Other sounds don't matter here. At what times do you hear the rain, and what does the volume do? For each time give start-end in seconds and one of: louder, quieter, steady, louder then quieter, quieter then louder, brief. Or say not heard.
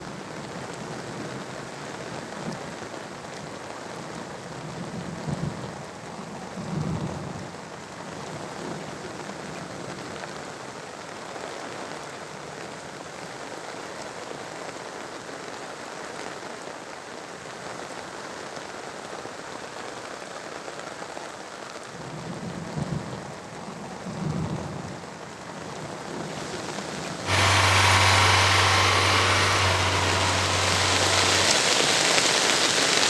0.0-33.0 louder.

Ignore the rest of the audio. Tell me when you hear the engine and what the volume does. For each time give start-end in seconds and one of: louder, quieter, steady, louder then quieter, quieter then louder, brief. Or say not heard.
27.2-31.5 quieter.